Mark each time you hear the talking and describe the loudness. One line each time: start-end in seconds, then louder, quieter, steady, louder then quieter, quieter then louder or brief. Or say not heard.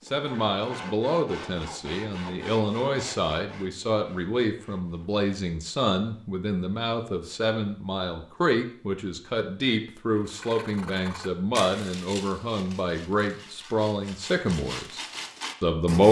0.1-15.0 steady
15.6-16.0 brief.